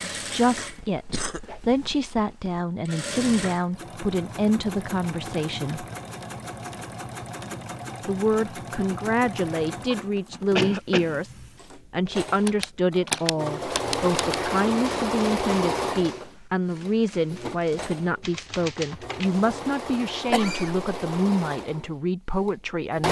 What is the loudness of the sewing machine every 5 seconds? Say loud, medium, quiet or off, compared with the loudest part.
medium, medium, loud, loud, loud.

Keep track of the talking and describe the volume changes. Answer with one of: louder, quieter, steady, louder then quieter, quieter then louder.
steady.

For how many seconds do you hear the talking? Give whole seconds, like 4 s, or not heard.
20 s.